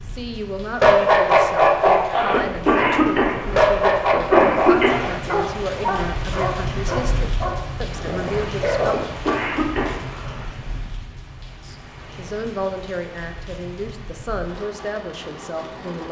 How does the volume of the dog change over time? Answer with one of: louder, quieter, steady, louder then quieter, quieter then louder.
quieter.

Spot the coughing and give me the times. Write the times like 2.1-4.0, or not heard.
2.3-5.0, 8.9-10.4.